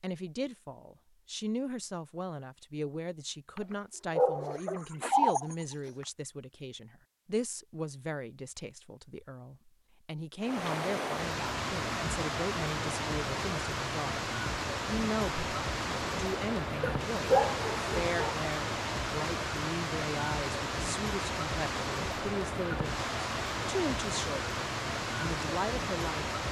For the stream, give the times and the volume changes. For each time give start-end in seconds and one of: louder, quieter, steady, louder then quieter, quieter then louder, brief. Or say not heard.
10.4-26.4 steady.